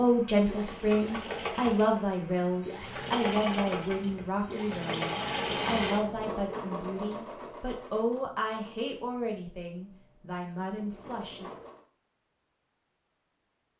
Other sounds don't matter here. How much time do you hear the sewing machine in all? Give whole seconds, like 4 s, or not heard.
12 s.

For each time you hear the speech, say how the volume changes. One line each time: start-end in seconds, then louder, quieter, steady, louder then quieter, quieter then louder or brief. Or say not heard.
0.0-11.5 quieter.